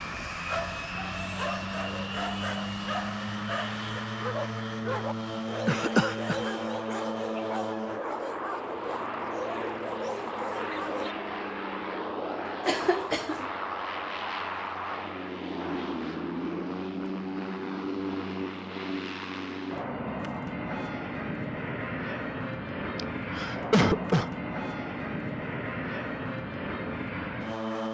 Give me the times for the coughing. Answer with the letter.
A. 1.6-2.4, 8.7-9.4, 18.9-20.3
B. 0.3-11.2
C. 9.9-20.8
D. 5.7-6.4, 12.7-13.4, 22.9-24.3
D.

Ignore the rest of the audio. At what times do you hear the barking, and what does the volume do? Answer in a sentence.
The barking can be heard from 0.3 to 11.2 s, at a steady volume.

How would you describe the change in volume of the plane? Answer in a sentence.
The loudness of the plane stays about the same.